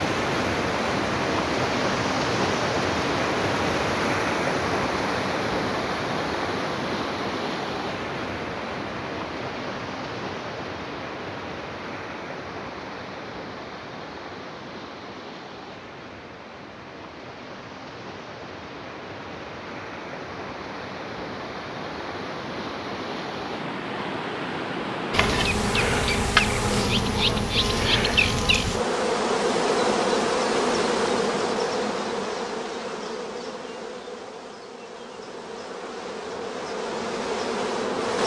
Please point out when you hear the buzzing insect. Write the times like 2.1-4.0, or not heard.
25.1-38.2.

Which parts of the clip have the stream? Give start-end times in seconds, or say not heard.
0.0-26.9.